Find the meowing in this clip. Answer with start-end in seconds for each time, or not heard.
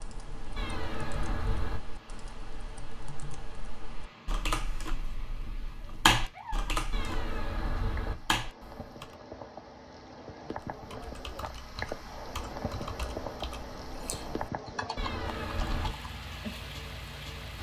0.6-1.8, 6.9-8.2, 14.9-15.9.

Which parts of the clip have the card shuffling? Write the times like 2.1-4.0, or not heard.
not heard.